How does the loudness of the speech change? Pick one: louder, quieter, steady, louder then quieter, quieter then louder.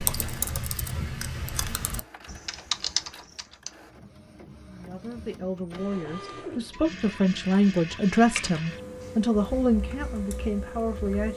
louder then quieter.